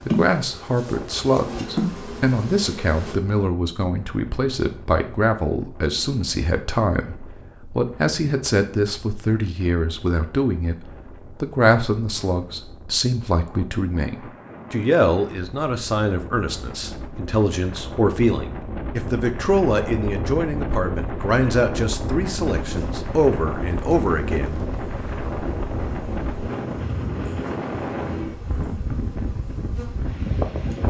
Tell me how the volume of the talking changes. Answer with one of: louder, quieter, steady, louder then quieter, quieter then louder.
steady.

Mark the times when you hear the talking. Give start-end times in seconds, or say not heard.
0.0-24.6.